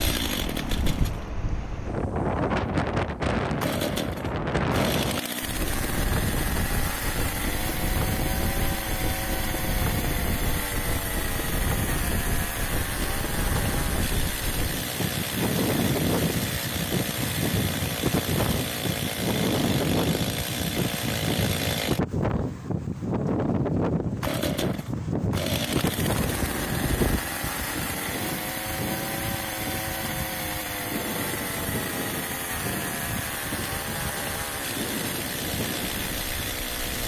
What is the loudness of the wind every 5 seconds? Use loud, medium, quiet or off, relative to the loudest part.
loud, medium, medium, loud, loud, loud, medium, medium.